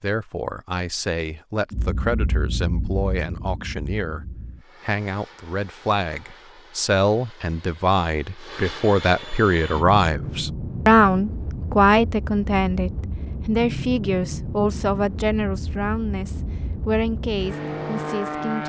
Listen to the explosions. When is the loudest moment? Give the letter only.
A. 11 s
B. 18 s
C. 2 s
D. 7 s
C.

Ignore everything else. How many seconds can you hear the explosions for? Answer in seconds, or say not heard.
3 s.